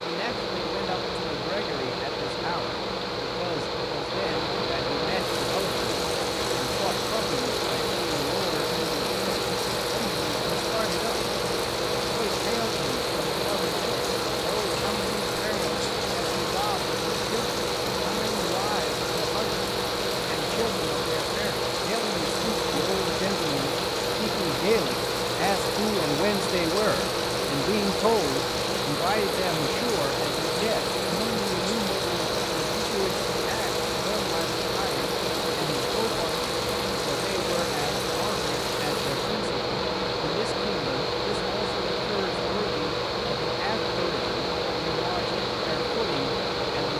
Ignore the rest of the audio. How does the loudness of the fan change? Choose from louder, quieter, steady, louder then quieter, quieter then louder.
steady.